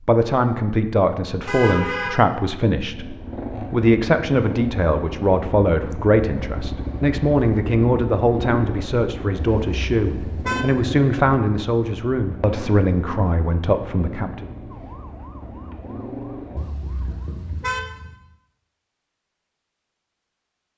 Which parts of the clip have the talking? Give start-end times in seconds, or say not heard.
0.1-14.5.